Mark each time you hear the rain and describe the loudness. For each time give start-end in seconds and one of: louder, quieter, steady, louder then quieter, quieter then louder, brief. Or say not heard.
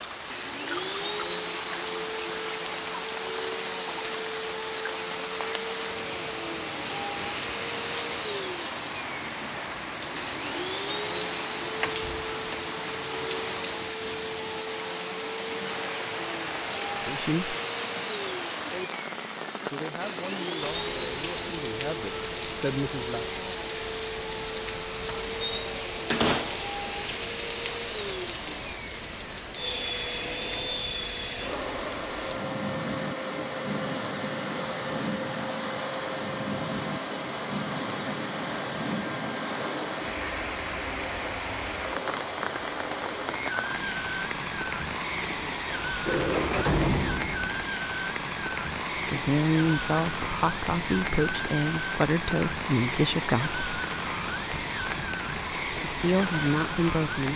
0.0-57.3 steady.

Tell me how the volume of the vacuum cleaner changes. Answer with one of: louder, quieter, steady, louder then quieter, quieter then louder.
steady.